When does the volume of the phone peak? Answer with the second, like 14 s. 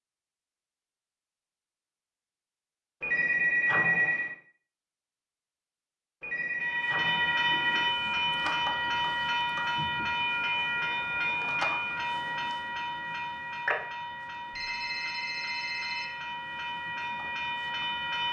4 s.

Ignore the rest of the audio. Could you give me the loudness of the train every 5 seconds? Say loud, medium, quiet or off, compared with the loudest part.
off, loud, loud, medium.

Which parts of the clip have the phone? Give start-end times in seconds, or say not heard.
3.0-4.3, 6.2-7.9, 14.5-16.1.